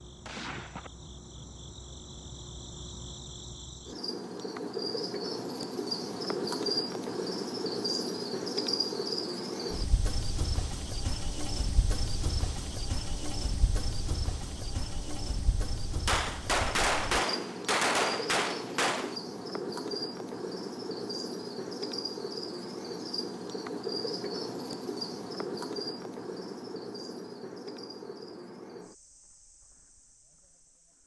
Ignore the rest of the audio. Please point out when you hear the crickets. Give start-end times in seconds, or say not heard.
0.0-31.0.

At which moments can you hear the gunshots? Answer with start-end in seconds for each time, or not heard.
0.2-0.9, 16.1-19.1.